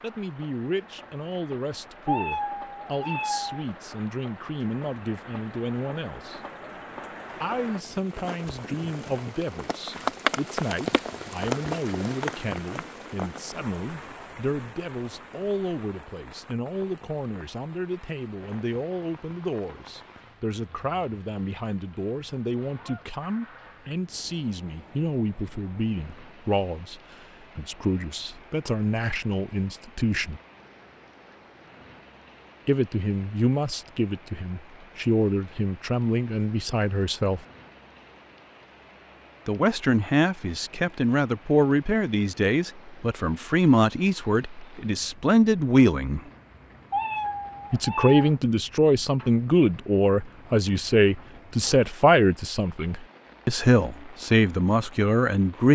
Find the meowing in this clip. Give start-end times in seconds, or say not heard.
2.0-3.6, 46.9-48.3.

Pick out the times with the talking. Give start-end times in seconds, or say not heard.
0.0-6.4, 7.4-30.4, 32.6-37.5, 39.5-46.2, 47.7-55.7.